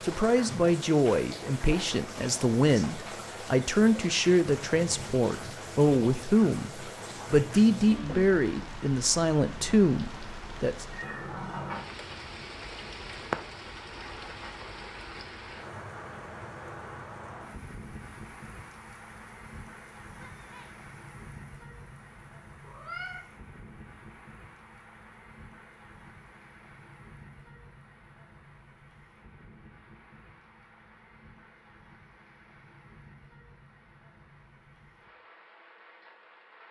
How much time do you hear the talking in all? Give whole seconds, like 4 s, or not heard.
11 s.